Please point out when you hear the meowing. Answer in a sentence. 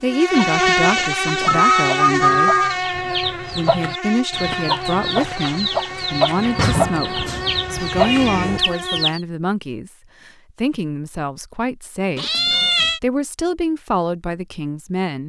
You can hear the meowing from 0.9 to 2.8 s, from 6.5 to 8.6 s and from 12.2 to 13.0 s.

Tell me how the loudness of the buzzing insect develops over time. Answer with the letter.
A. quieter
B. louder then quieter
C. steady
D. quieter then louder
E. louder
A.